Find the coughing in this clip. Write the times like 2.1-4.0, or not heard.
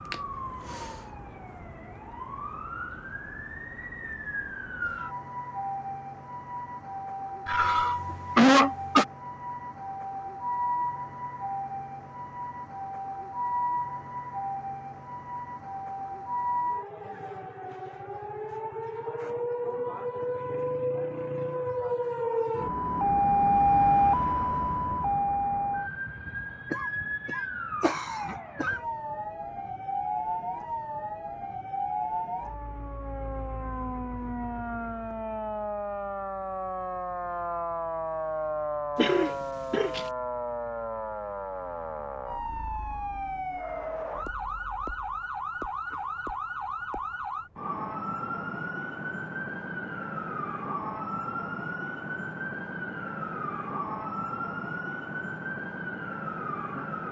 7.5-9.1, 26.7-28.8, 39.0-40.0.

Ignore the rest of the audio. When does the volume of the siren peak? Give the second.
24 s.